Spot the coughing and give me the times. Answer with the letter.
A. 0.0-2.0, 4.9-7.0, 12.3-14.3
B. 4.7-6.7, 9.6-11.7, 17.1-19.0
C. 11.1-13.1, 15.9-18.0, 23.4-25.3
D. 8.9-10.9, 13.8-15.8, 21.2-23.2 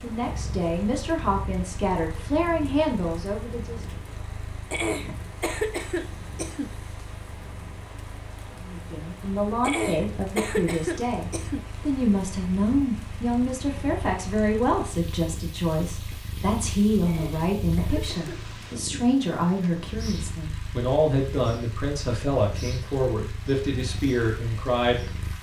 B.